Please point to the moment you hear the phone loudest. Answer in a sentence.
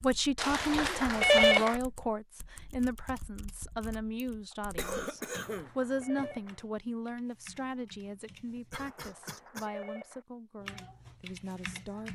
The loudest moment of the phone is at 1 second.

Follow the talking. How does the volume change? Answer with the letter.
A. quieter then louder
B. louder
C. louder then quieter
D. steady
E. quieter
E.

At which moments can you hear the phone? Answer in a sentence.
You can hear the phone from 0.3 to 1.8 s, from 5.4 to 6.6 s and from 8.8 to 10.2 s.